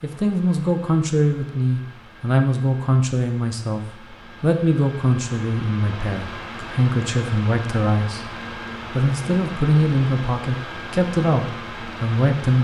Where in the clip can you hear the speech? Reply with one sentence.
The speech can be heard from 0.0 to 12.5 s.